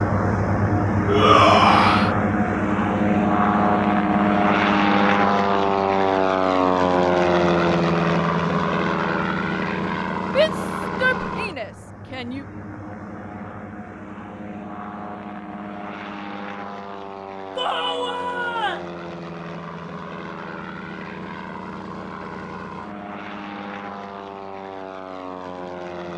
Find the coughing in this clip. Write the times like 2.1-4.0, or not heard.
not heard.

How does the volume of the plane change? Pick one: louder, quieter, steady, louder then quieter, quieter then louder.
quieter.